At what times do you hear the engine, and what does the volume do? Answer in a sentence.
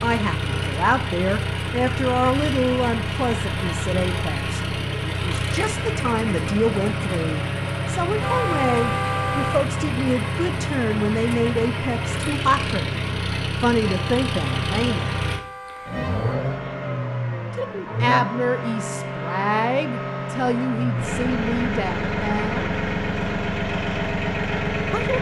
You can hear the engine from 0.0 to 25.1 s, at a steady volume.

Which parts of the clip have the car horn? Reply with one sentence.
You can hear the car horn from 8.2 to 9.7 s and from 13.8 to 16.4 s.